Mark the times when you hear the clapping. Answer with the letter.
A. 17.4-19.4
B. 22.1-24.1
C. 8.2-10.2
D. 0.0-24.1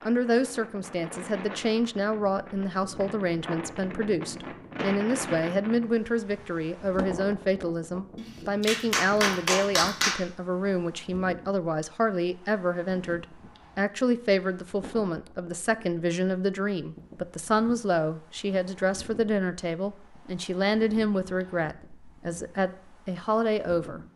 C.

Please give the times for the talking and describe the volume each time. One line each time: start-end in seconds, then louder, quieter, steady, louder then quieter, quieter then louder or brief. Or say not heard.
0.0-24.1 steady.